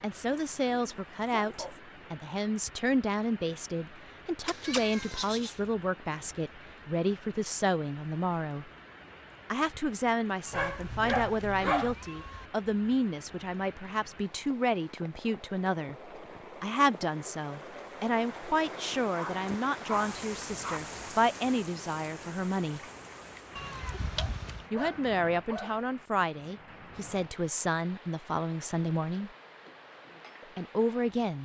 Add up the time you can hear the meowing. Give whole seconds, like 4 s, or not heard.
4 s.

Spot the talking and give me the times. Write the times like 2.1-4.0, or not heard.
0.0-8.7, 9.5-22.8, 24.7-29.3, 30.4-31.3.